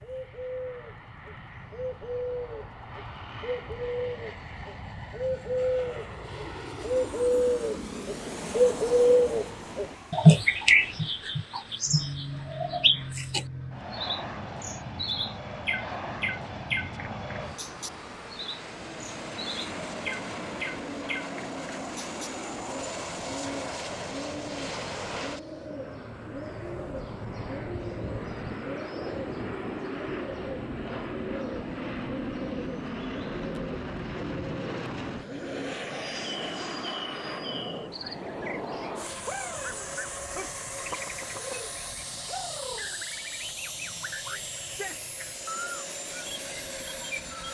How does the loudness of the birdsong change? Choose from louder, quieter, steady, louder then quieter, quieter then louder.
quieter.